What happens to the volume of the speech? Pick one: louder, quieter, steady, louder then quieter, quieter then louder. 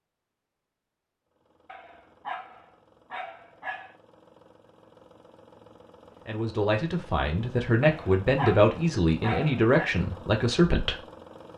louder then quieter.